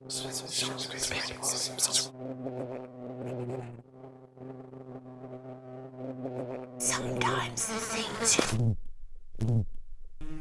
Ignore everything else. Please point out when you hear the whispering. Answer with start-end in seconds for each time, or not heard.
0.1-2.1, 6.8-8.6.